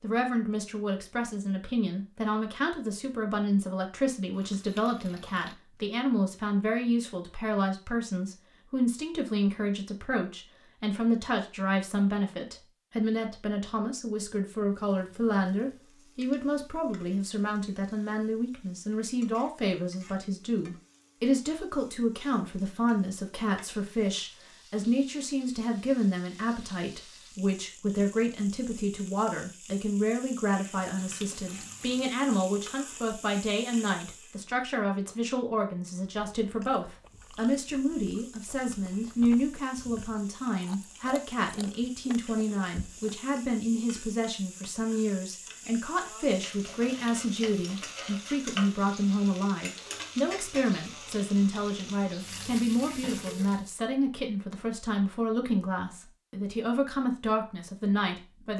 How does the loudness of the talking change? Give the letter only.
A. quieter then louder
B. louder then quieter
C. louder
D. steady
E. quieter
D.